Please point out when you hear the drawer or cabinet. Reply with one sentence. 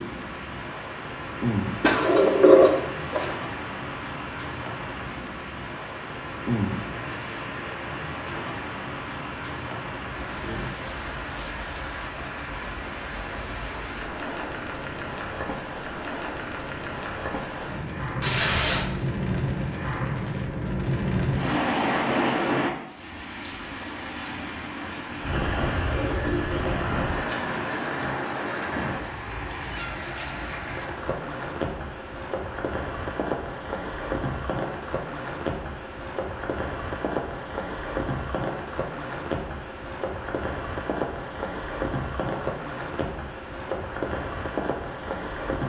You can hear the drawer or cabinet from 1.8 to 3.4 s.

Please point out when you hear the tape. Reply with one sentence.
The tape can be heard from 18.2 to 18.9 s.